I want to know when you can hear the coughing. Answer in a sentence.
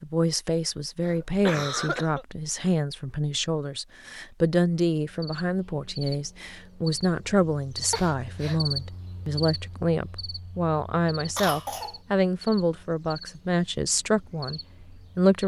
The coughing can be heard from 1.0 to 2.2 s, from 7.9 to 8.6 s and from 11.3 to 11.9 s.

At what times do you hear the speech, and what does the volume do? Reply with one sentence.
You can hear the speech from 0.0 to 15.4 s, at a steady volume.